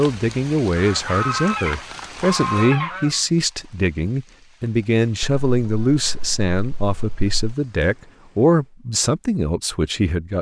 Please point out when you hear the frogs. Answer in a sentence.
You can't hear the frogs here.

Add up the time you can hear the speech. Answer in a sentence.
The speech can be heard for 10 seconds in total.